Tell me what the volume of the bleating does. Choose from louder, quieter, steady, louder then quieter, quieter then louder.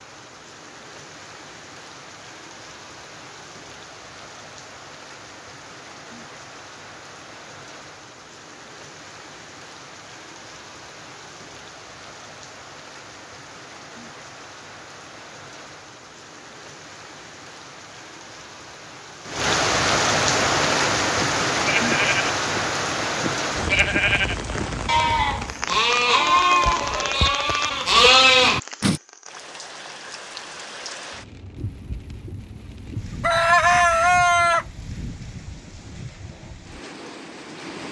louder.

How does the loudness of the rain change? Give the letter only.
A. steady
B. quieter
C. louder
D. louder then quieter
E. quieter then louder
D.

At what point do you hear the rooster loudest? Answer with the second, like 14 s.
34 s.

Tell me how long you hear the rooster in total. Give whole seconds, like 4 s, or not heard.
4 s.